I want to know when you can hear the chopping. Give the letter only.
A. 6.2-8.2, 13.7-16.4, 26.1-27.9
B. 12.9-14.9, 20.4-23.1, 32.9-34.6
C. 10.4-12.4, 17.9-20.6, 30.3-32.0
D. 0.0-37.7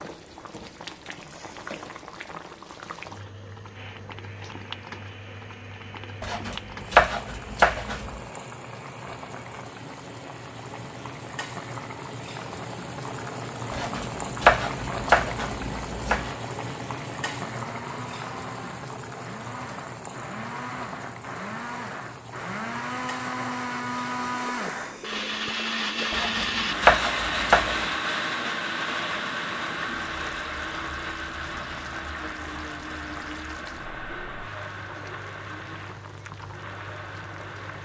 A.